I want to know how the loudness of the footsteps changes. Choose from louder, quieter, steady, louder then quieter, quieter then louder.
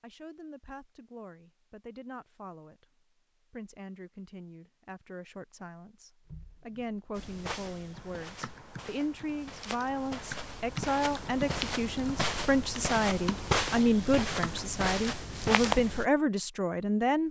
louder.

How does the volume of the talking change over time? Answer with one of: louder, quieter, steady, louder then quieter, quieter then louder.
louder.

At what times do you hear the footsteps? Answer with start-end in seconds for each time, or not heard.
7.2-16.1.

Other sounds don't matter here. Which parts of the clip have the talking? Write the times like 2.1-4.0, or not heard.
0.0-17.2.